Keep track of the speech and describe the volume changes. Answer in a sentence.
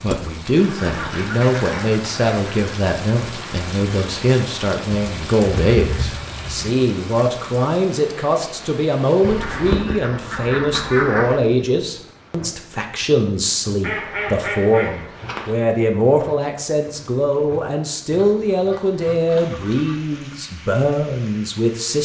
The volume of the speech stays about the same.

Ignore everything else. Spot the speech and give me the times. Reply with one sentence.
You can hear the speech from 0.0 to 22.0 s.